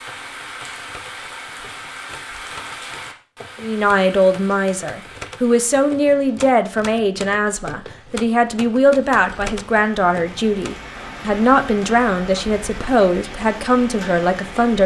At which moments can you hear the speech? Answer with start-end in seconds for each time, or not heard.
3.6-14.8.